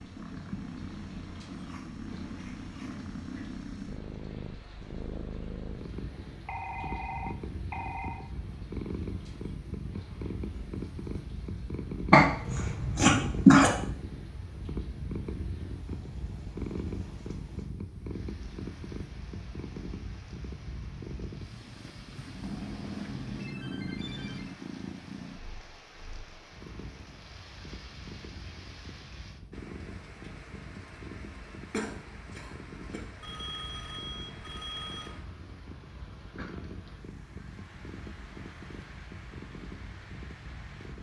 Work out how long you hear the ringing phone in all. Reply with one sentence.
The ringing phone can be heard for 6 seconds in total.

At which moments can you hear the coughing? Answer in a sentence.
The coughing can be heard from 12.1 to 13.7 s and from 31.7 to 33.0 s.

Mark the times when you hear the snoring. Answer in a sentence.
The snoring can't be heard in this clip.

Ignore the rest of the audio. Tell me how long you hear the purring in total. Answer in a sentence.
You can hear the purring for 41 seconds altogether.